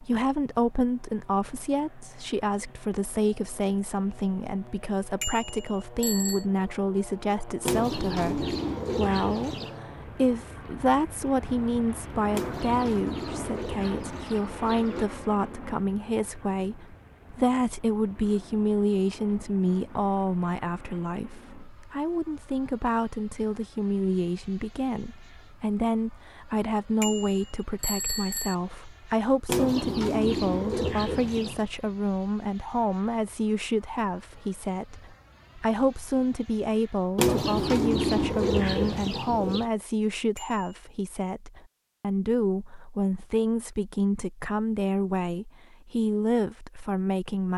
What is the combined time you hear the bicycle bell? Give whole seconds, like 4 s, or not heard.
3 s.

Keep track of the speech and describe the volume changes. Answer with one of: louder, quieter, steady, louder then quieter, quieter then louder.
steady.